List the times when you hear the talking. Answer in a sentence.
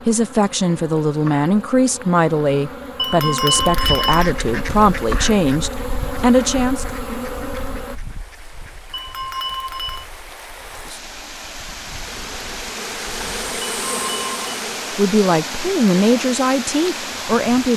The talking can be heard from 0.1 to 6.8 s and from 14.9 to 17.7 s.